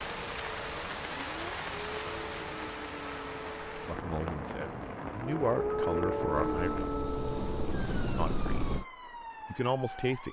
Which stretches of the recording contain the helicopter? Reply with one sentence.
The helicopter can be heard from 6.2 to 8.8 s.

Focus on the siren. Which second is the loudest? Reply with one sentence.
The loudest moment of the siren is at 6 seconds.